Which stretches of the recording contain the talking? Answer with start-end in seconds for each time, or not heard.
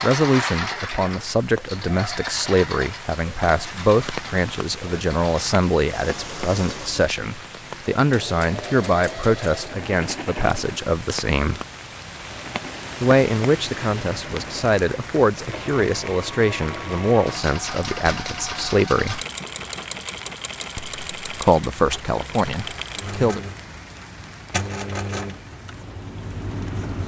0.0-11.6, 13.0-19.2, 20.8-23.4.